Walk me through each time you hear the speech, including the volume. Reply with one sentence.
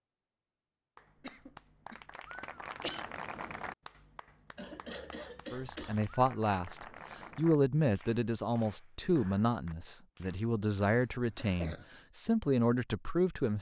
The speech can be heard from 5.5 to 13.5 s, at a steady volume.